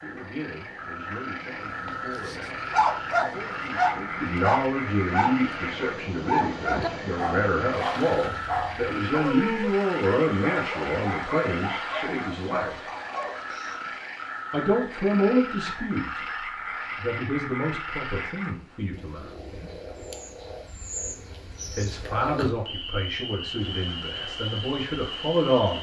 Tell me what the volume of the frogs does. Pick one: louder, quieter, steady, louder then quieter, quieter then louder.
steady.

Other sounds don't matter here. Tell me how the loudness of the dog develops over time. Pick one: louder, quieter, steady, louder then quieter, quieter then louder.
quieter.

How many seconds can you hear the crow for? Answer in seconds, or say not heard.
not heard.